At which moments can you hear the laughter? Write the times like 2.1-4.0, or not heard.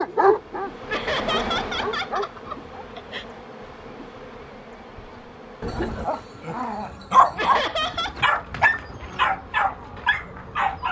0.9-3.2, 7.3-8.2.